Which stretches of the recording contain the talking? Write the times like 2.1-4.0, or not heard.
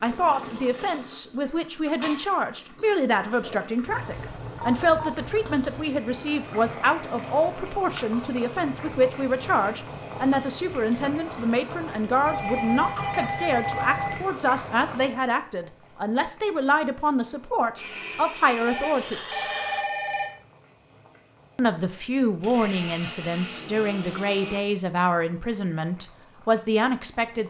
0.0-19.4, 21.6-27.4.